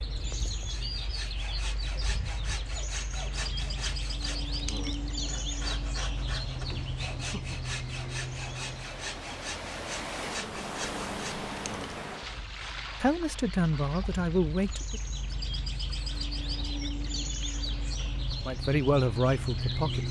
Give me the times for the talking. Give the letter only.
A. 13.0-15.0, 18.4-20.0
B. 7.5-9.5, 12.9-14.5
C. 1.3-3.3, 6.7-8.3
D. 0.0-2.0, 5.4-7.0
A.